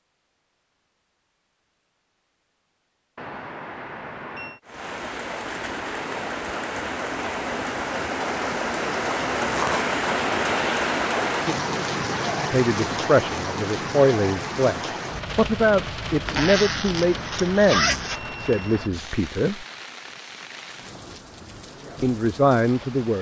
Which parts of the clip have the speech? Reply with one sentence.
You can hear the speech from 12.5 to 19.6 s and from 22.0 to 23.1 s.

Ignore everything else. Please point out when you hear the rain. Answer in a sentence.
The rain can be heard from 4.6 to 23.1 s.